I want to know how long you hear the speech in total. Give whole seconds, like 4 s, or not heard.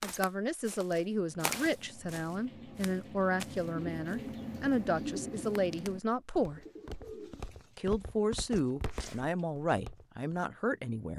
10 s.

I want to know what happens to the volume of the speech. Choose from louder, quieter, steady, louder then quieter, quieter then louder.
steady.